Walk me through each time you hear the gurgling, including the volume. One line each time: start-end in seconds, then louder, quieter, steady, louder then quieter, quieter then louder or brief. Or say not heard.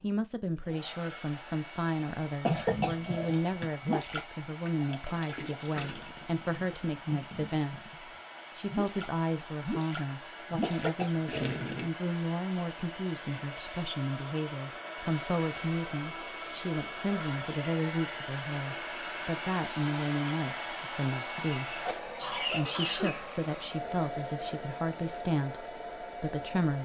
2.5-11.9 quieter then louder.